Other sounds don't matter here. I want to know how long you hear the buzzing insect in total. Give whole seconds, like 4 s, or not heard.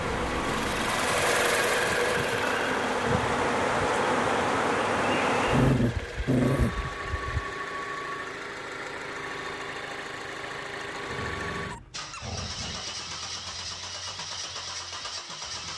6 s.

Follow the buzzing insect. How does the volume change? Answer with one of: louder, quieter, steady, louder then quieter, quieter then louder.
louder.